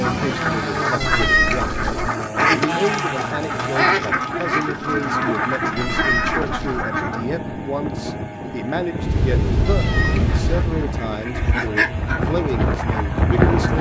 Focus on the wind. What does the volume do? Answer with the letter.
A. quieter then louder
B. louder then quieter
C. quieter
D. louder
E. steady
D.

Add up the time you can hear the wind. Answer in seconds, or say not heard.
14 s.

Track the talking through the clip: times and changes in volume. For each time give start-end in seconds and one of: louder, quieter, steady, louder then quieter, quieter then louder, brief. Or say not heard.
0.0-13.7 steady.